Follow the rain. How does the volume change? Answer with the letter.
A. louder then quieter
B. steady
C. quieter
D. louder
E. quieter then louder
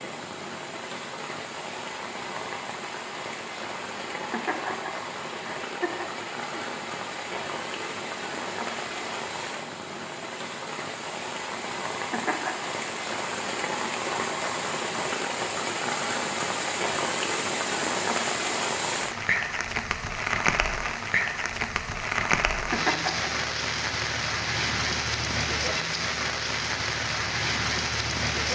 D.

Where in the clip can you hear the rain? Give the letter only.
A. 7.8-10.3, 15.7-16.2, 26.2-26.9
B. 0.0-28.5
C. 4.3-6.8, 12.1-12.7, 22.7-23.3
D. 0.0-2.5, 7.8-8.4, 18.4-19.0
B.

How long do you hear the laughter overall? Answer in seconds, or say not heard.
4 s.